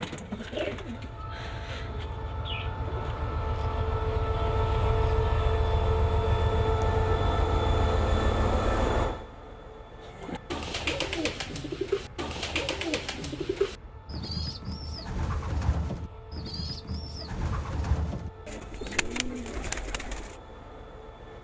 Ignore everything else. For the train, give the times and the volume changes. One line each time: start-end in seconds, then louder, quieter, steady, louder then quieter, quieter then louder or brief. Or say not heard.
0.2-21.3 louder then quieter.